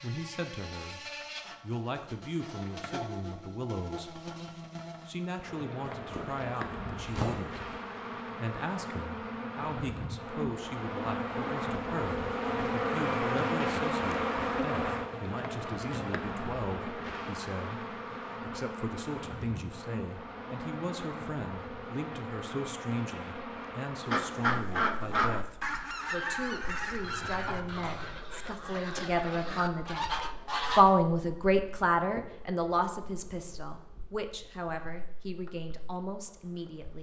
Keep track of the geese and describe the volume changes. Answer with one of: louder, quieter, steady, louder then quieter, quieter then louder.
quieter then louder.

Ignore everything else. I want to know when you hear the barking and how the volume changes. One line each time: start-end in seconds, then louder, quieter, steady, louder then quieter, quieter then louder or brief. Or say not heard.
not heard.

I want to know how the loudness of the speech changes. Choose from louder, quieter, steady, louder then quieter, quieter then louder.
louder.